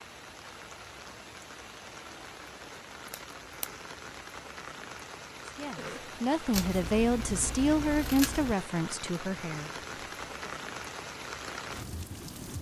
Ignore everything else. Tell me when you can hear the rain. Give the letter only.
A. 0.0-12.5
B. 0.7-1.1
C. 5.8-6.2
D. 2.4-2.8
A.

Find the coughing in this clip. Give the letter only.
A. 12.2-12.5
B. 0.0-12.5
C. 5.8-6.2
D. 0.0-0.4
C.